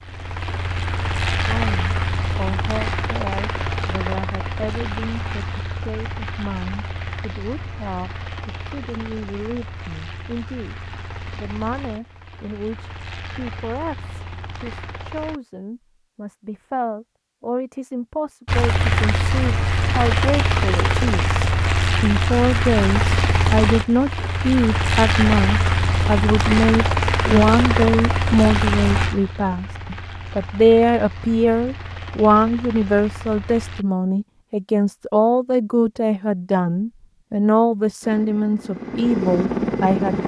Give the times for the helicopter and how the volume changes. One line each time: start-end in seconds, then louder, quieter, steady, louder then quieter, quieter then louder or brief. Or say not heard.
0.0-15.4 quieter
18.4-33.9 quieter
38.0-40.2 brief.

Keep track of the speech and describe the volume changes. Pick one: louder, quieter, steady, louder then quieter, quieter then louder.
louder.